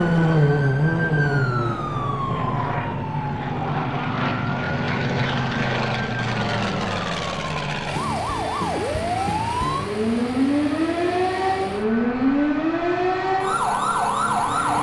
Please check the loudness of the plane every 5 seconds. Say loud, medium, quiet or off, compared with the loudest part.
loud, loud, medium.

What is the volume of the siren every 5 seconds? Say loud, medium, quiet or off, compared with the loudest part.
loud, medium, loud.